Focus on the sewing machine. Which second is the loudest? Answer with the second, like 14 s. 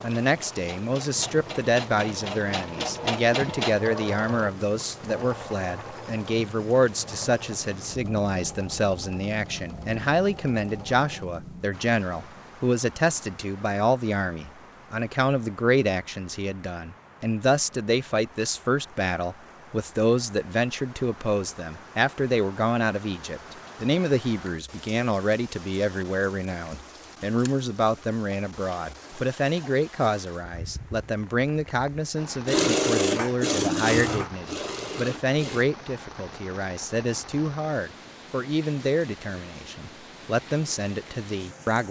33 s.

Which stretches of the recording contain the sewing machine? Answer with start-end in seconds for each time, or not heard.
0.2-11.3, 32.5-35.6.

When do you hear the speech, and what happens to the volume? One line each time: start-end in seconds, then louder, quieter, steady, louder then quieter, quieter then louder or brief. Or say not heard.
0.0-41.8 steady.